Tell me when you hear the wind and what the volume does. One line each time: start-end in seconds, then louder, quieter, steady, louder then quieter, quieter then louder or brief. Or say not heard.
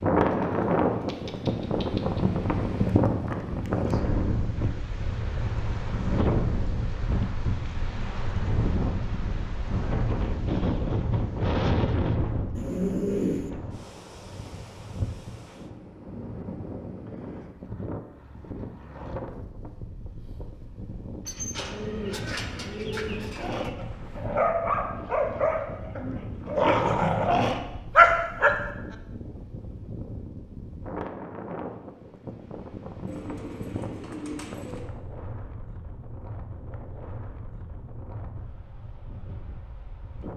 0.0-40.3 quieter.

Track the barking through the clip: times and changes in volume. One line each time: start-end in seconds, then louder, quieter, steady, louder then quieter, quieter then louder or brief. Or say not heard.
23.4-28.6 quieter then louder.